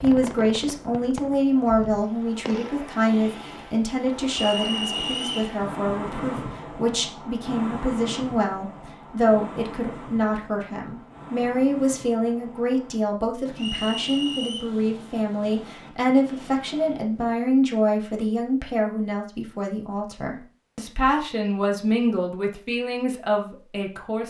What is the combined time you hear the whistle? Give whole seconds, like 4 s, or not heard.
2 s.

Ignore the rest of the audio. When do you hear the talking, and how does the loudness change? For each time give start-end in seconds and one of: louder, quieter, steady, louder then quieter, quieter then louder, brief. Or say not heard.
0.0-24.2 steady.